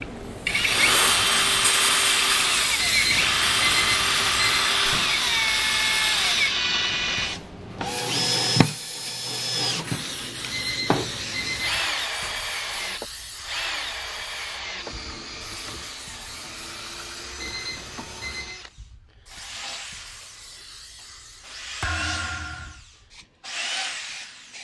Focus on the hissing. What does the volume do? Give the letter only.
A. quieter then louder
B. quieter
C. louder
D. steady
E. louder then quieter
B.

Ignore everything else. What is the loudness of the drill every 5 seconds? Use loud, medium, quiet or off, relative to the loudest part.
loud, loud, medium, quiet, quiet.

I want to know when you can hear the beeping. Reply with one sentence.
You can hear the beeping from 2.8 to 4.7 s, from 10.5 to 11.8 s and from 17.4 to 18.6 s.